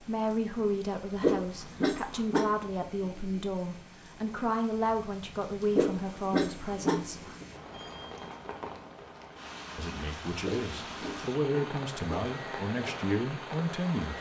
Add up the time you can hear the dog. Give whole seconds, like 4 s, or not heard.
5 s.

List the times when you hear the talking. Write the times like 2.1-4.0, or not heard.
0.0-7.2, 9.8-14.1.